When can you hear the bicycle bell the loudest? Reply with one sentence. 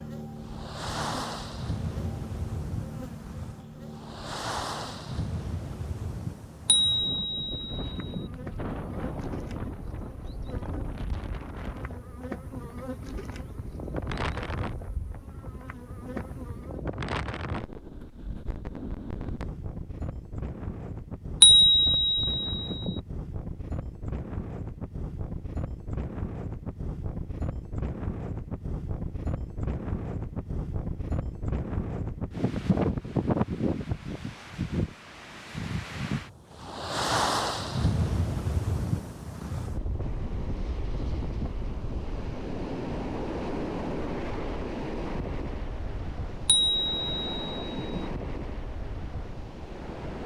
The volume of the bicycle bell peaks at 22 seconds.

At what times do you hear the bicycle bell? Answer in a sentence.
The bicycle bell can be heard from 6.7 to 8.2 s, from 21.4 to 22.9 s and from 46.5 to 48.0 s.